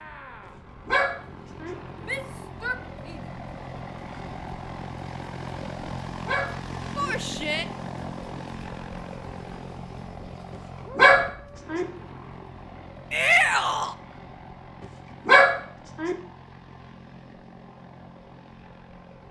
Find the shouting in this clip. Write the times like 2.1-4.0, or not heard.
2.0-3.2, 7.0-7.7, 13.1-13.9.